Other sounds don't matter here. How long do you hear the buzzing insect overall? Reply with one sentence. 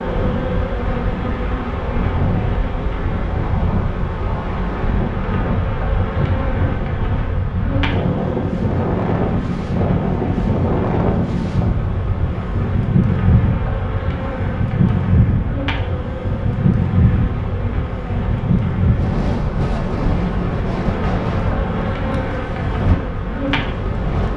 You can hear the buzzing insect for 24 seconds altogether.